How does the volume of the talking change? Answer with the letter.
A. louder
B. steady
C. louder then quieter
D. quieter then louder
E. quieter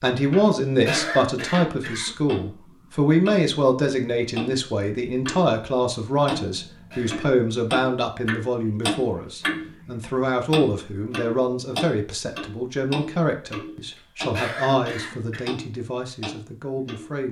E.